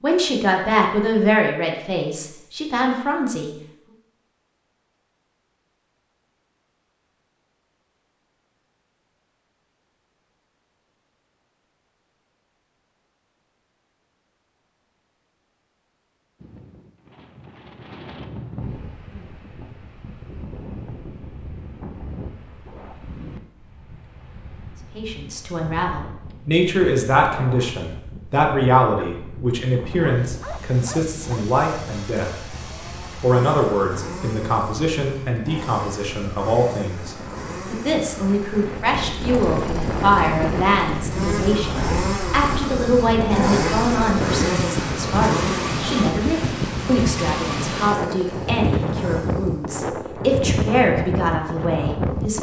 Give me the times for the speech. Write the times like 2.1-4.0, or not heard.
0.0-3.5, 24.9-32.3, 33.2-52.3.